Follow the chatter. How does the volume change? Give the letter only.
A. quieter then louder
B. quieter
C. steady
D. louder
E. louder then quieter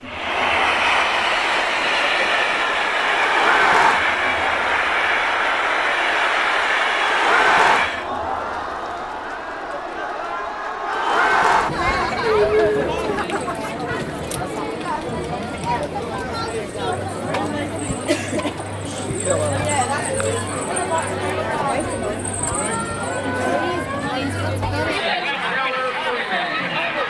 C.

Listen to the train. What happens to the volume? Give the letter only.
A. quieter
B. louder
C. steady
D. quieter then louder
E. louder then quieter
C.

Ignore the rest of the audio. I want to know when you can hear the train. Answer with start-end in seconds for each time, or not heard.
0.0-8.1.